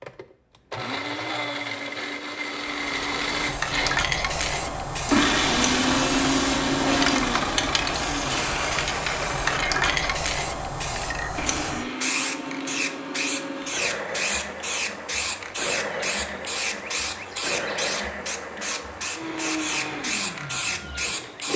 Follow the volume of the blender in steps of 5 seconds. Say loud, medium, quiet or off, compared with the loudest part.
medium, loud, medium, medium, medium.